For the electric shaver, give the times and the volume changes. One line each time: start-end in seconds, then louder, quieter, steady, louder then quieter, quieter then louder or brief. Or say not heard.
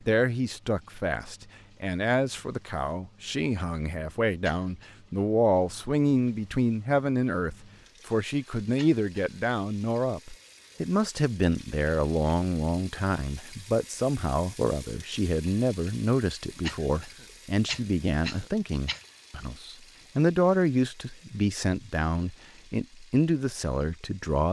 not heard.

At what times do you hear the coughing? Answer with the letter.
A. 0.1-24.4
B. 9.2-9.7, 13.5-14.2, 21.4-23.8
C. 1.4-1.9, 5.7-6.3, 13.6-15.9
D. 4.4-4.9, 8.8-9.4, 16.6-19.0
D.